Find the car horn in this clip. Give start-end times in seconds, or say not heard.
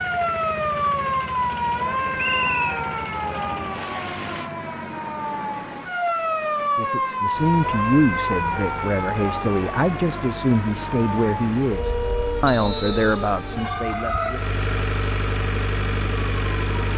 not heard.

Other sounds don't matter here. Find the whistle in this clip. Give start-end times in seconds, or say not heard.
2.1-2.8, 12.4-13.3.